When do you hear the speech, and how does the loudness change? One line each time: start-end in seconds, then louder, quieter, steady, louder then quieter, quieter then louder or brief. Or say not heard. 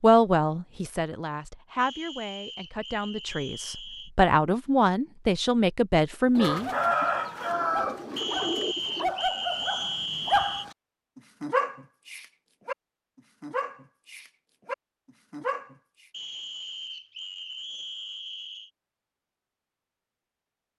0.0-6.7 louder.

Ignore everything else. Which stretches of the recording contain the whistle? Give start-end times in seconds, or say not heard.
1.8-4.1, 8.2-10.7, 16.1-18.7.